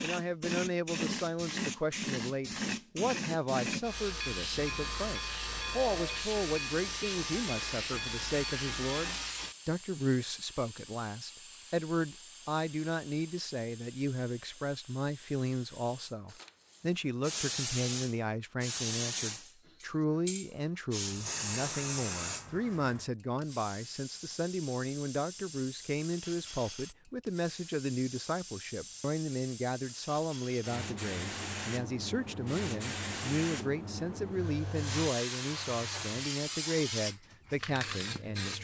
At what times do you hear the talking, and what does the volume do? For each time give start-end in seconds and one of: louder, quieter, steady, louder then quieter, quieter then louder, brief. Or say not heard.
0.0-38.5 steady.